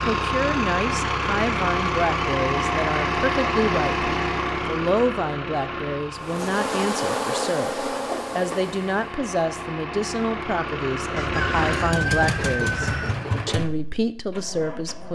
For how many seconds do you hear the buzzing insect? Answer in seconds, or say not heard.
3 s.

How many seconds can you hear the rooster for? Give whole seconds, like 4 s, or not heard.
2 s.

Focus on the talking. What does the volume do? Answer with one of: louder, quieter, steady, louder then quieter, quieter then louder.
steady.